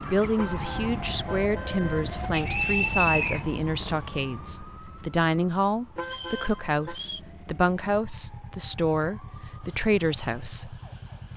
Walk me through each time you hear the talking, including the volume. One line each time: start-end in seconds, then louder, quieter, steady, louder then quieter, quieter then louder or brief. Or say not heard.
0.0-10.8 steady.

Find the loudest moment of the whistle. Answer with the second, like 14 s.
3 s.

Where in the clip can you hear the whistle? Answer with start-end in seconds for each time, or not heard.
2.3-3.5, 6.0-7.2.